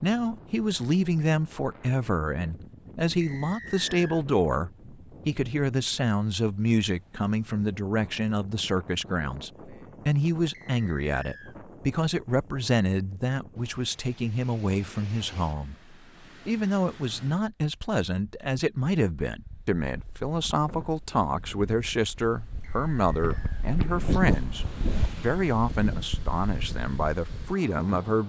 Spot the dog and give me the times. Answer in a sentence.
The dog can't be heard in this clip.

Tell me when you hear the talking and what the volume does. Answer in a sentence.
You can hear the talking from 0.0 to 28.2 s, at a steady volume.